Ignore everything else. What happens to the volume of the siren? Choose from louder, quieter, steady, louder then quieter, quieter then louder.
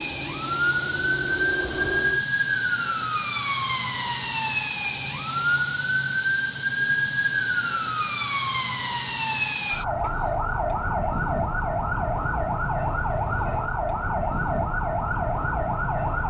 steady.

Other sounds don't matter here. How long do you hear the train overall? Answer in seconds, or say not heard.
2 s.